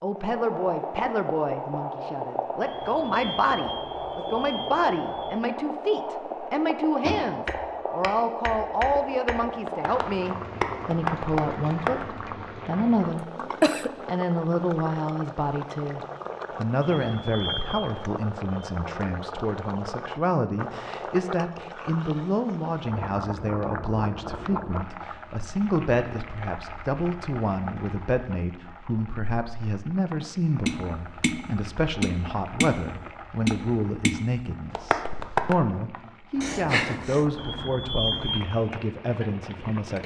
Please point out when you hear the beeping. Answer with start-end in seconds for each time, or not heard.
2.6-5.3, 16.8-17.9, 37.4-38.5.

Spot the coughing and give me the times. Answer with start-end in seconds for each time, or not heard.
13.2-13.9, 36.4-37.2.